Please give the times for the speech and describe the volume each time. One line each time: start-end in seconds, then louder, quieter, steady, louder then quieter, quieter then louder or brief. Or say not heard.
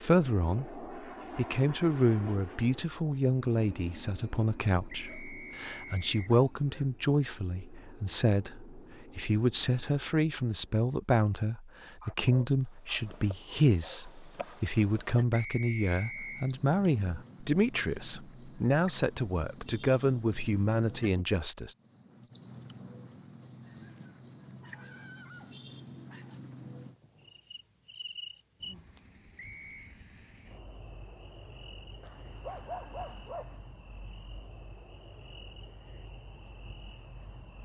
0.0-21.8 steady.